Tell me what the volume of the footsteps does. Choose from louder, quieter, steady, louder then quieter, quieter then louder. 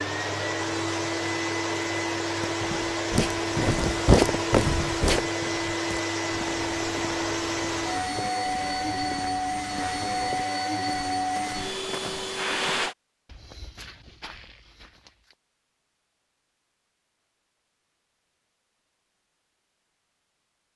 quieter.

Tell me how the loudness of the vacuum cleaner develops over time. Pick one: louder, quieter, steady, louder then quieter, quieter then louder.
steady.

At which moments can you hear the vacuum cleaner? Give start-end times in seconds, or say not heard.
0.0-12.9.